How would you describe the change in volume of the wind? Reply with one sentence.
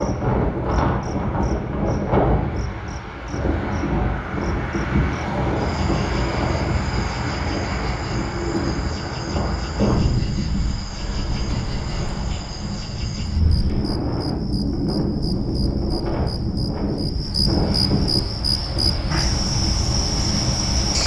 The loudness of the wind stays about the same.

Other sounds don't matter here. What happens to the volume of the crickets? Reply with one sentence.
The loudness of the crickets goes up.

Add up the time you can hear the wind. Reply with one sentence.
You can hear the wind for 21 seconds altogether.